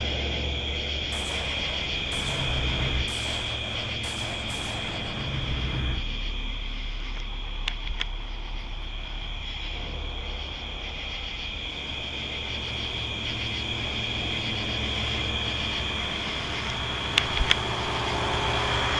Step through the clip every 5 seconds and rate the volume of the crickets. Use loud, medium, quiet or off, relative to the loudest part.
loud, medium, loud, loud.